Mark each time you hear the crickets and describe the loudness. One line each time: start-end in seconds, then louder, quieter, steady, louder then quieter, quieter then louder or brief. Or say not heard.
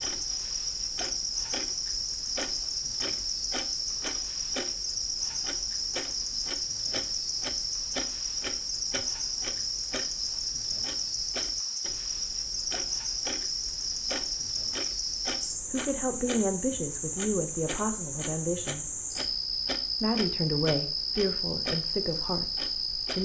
0.0-23.2 steady.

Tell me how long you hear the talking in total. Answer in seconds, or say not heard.
6 s.